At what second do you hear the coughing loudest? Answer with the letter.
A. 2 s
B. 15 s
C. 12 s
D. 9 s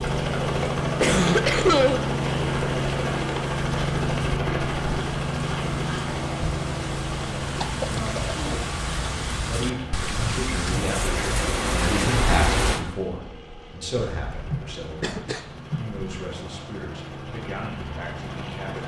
A.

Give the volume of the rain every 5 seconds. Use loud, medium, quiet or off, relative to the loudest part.
quiet, medium, loud, off.